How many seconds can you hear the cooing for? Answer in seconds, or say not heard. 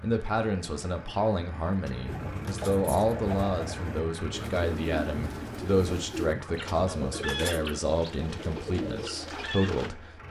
8 s.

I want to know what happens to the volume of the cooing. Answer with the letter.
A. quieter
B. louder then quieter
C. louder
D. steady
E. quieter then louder
D.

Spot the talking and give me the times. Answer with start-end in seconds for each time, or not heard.
0.0-10.2.